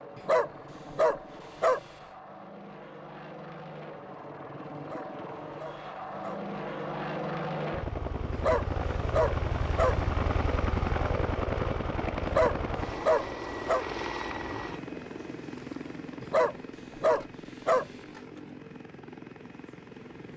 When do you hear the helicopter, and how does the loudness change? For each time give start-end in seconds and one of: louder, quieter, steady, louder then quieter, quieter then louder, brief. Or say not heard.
0.0-20.3 louder then quieter.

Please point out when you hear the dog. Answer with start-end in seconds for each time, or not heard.
0.1-1.8, 4.8-6.4, 8.3-9.9, 12.2-13.8, 16.2-17.9.